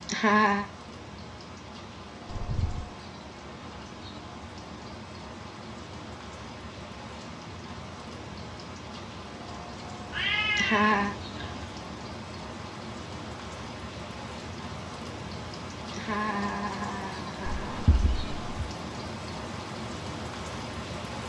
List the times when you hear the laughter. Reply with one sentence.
You can hear the laughter from 0.1 to 0.7 s, from 10.6 to 11.2 s and from 15.9 to 17.9 s.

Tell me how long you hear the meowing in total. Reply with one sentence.
The meowing can be heard for 3 seconds in total.